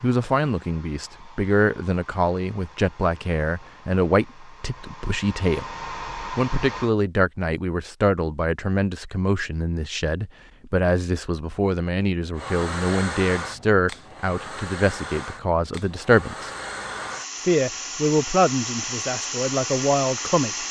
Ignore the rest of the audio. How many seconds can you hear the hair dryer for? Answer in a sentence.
You can hear the hair dryer for 15 seconds altogether.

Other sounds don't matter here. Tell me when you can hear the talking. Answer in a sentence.
The talking can be heard from 0.0 to 5.7 s, from 6.3 to 16.5 s and from 17.4 to 20.6 s.